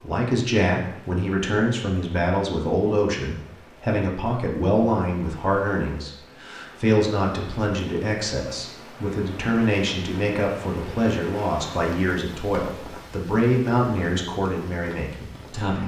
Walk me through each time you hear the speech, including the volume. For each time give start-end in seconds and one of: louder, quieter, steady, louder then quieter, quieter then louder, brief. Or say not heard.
0.0-15.8 steady.